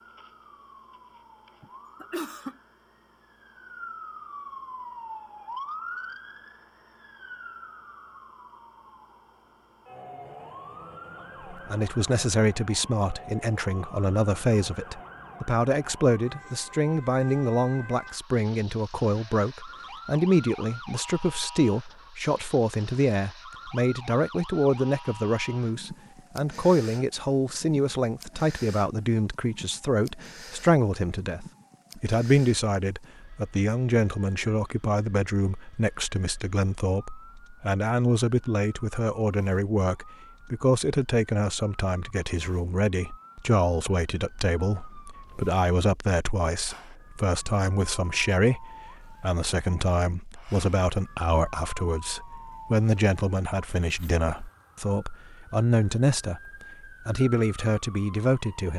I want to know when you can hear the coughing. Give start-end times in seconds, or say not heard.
1.6-2.5.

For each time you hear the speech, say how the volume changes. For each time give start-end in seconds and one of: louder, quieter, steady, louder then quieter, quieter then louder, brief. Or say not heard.
11.5-58.7 steady.